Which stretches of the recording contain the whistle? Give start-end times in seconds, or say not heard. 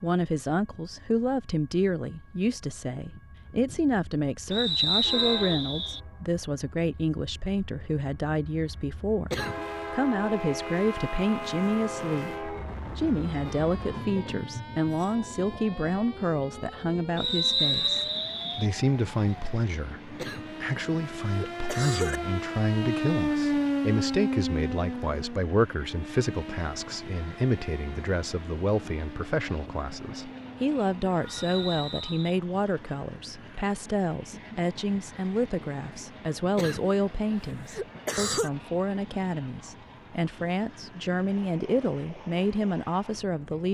4.5-6.0, 17.1-18.7, 31.2-32.4.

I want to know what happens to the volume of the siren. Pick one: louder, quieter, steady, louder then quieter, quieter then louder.
louder then quieter.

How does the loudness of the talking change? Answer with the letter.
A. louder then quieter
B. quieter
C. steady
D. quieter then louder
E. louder
C.